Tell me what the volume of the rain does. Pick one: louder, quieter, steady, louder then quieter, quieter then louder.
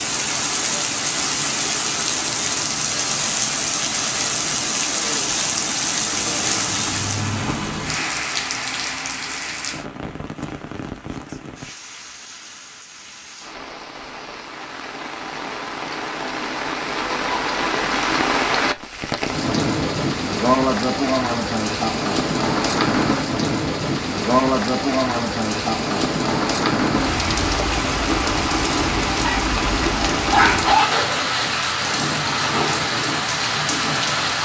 quieter then louder.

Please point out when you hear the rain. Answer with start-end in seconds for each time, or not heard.
0.0-34.4.